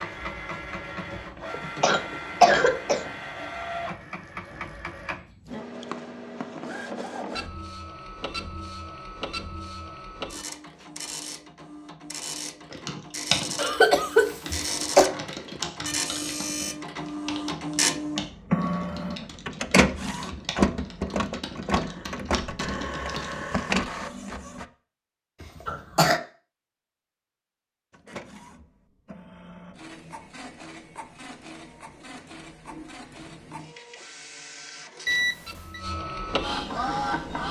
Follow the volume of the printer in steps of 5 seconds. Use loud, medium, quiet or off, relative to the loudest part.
medium, medium, medium, loud, loud, quiet, quiet, loud.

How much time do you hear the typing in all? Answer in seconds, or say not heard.
11 s.